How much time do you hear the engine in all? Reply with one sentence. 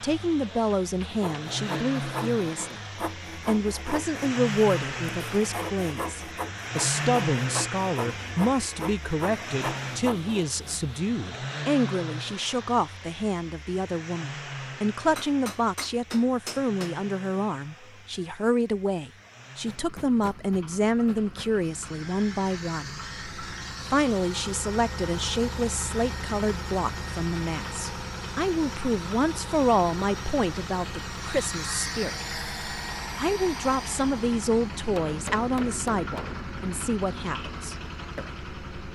You can hear the engine for 39 seconds altogether.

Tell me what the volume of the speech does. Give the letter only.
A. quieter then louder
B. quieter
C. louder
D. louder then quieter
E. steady
E.